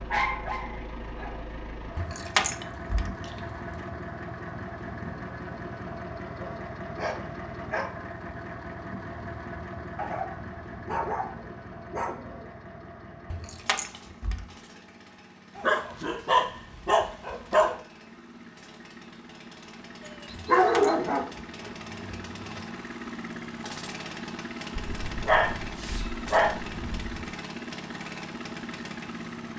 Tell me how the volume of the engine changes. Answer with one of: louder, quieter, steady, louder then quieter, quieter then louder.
quieter then louder.